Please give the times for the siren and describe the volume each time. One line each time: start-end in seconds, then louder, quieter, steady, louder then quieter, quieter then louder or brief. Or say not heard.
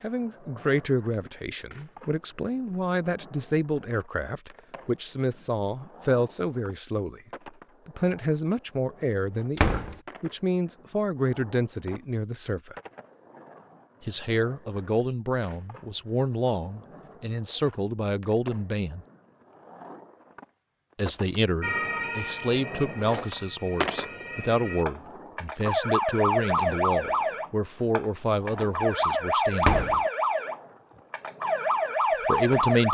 21.6-32.8 louder.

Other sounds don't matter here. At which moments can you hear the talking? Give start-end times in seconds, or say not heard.
0.0-7.2, 7.8-12.8, 14.0-19.1, 20.9-29.8, 32.2-32.8.